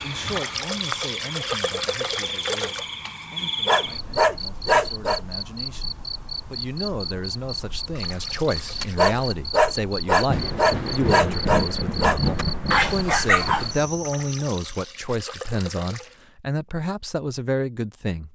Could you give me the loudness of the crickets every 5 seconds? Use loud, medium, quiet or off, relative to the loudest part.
loud, loud, loud, off.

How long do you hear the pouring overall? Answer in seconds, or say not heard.
6 s.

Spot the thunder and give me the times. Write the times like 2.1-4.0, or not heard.
10.2-13.9.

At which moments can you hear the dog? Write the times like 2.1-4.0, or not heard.
3.6-5.2, 8.8-13.8.